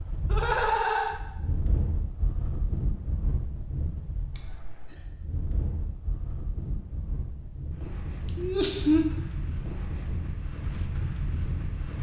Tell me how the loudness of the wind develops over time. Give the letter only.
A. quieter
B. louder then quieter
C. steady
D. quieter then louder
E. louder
C.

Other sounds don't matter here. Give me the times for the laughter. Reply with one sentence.
The laughter can be heard from 0.3 to 1.1 s, from 4.3 to 5.0 s and from 8.2 to 9.1 s.